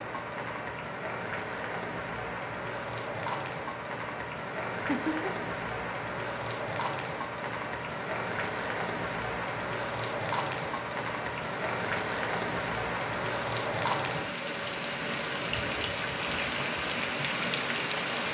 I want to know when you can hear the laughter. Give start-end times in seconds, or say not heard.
4.8-5.3.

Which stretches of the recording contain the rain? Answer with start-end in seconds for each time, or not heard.
0.0-18.2.